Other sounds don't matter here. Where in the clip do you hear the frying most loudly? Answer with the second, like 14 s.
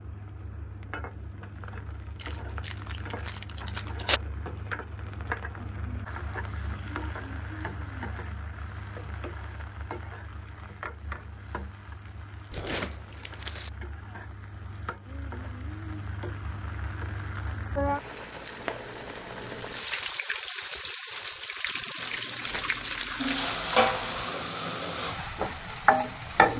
26 s.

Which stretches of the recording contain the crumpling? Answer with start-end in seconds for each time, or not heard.
2.2-4.2, 12.5-13.7, 22.4-24.3.